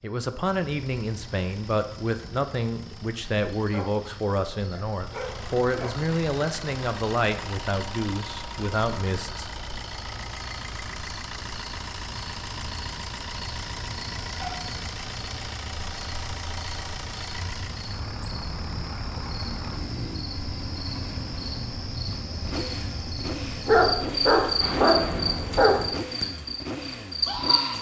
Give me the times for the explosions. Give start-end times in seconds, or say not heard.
not heard.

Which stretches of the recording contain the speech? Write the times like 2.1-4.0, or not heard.
0.0-9.4.